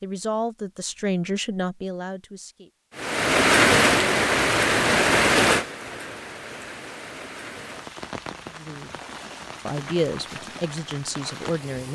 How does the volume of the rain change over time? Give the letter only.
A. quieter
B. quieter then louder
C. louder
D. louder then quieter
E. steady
A.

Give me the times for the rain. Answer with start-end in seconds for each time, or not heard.
3.0-11.8.